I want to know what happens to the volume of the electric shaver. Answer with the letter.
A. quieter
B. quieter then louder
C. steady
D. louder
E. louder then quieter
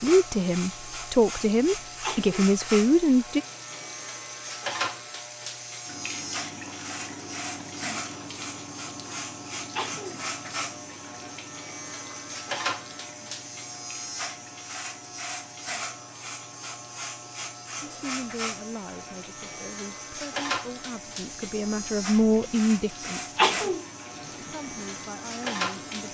C.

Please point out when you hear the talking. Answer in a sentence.
You can hear the talking from 0.0 to 3.4 s, from 17.8 to 23.8 s and from 24.4 to 26.0 s.